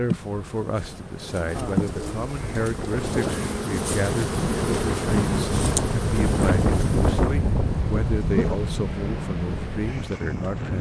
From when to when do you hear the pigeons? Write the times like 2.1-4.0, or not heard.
1.5-3.6.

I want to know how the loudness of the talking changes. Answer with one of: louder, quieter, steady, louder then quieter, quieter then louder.
steady.